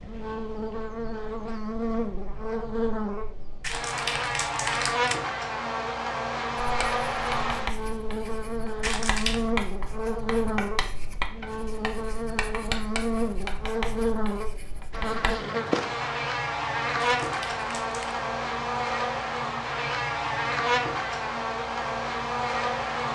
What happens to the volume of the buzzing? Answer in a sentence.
The loudness of the buzzing stays about the same.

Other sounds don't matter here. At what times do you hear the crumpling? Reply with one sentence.
You can hear the crumpling from 3.6 to 5.2 s, from 8.8 to 9.4 s and from 17.2 to 18.2 s.